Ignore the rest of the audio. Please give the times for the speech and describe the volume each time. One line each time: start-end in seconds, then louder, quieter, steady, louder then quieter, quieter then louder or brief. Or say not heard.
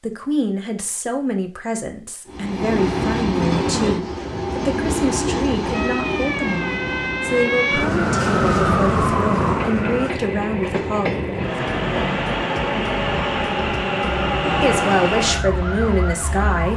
0.0-12.2 steady
14.6-16.7 brief.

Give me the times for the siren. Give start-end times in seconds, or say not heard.
5.7-10.2, 13.1-16.7.